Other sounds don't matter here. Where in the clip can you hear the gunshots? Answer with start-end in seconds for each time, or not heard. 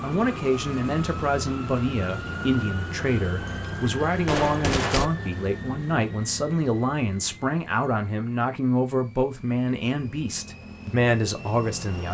3.4-5.1.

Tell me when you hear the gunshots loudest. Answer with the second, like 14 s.
5 s.